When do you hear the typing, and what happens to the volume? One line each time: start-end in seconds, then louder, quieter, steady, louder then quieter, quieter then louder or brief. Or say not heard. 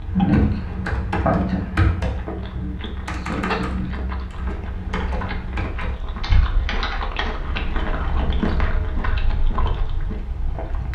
0.0-8.8 quieter.